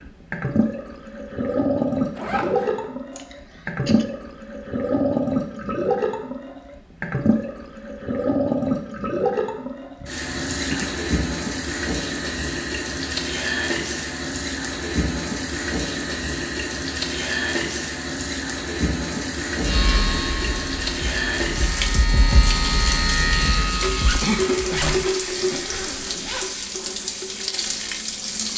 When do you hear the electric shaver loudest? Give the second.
23 s.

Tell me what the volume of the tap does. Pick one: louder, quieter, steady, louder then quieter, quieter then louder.
steady.